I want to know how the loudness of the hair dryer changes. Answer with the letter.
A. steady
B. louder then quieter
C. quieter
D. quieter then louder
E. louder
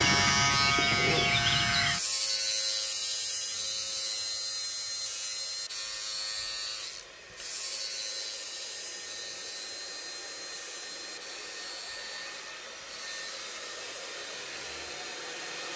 E.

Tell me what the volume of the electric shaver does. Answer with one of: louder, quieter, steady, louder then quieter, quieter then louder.
quieter.